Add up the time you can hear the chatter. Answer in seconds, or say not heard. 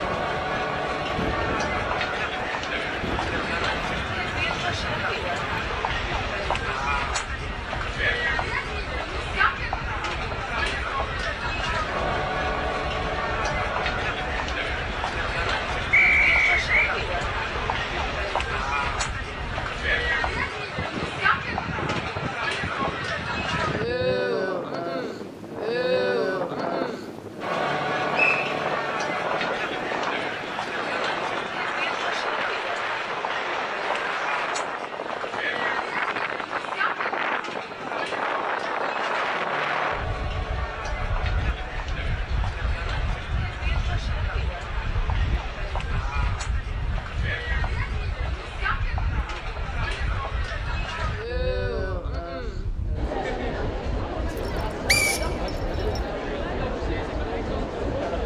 58 s.